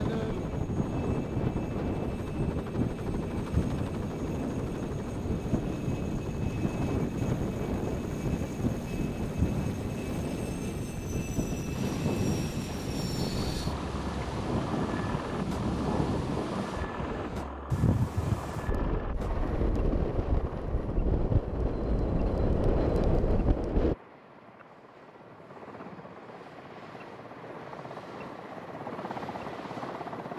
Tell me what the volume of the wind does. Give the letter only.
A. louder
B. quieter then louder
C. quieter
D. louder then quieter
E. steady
E.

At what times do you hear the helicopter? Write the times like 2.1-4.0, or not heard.
0.0-30.3.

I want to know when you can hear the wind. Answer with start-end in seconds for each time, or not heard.
0.0-23.9.